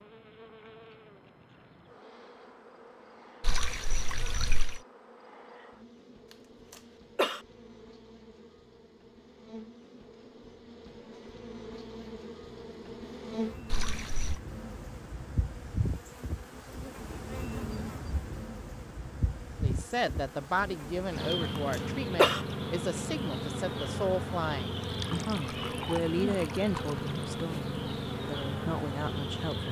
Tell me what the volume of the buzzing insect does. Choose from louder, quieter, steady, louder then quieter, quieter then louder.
louder.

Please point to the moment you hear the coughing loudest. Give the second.
22 s.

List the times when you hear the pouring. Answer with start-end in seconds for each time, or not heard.
3.4-4.8, 13.7-14.4, 24.9-27.1.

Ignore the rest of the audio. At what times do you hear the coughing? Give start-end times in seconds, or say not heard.
6.7-7.4, 21.7-22.4.